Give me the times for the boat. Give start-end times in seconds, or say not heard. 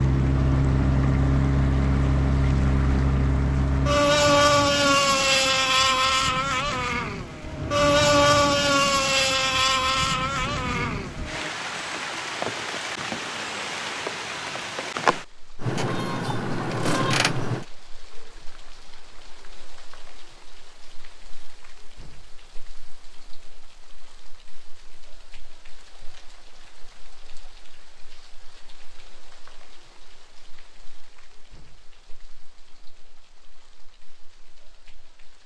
0.0-11.6, 15.6-17.6.